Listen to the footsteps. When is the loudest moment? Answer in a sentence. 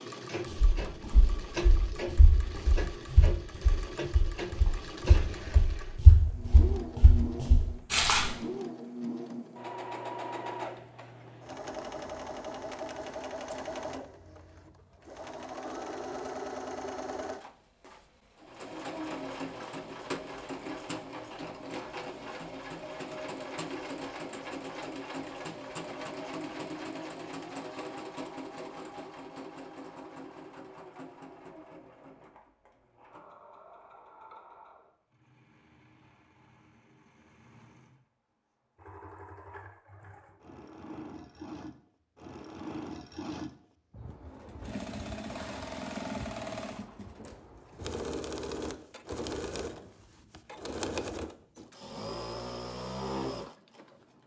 The loudest moment of the footsteps is at 8 seconds.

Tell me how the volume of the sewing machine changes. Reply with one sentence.
The loudness of the sewing machine goes down, then up.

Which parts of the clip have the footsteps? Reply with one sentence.
You can hear the footsteps from 0.5 to 8.3 s.